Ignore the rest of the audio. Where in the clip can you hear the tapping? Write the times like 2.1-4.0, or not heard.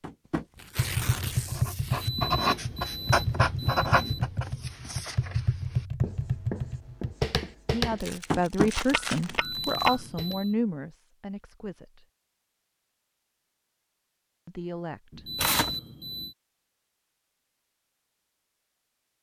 0.0-10.3.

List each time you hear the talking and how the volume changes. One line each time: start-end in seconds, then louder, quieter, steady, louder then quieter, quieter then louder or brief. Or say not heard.
7.7-12.1 quieter
14.4-15.3 brief.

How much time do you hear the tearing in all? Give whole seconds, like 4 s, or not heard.
4 s.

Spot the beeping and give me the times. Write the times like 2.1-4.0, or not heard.
1.9-4.3, 9.2-10.6, 15.1-16.4.